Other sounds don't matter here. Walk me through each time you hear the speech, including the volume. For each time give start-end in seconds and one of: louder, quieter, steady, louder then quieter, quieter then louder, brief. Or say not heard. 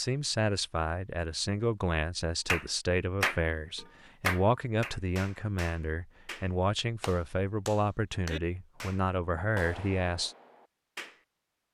0.0-10.3 steady.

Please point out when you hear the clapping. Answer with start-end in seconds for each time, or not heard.
2.5-11.2.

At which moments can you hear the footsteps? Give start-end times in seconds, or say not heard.
not heard.